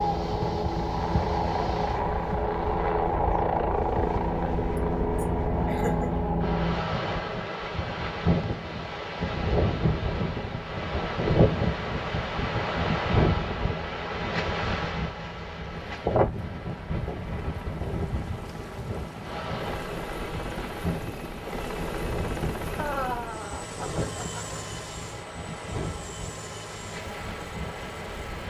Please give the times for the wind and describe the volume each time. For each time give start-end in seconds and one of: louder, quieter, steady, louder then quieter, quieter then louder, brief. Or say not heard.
0.0-28.4 louder then quieter.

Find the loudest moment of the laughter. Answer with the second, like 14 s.
23 s.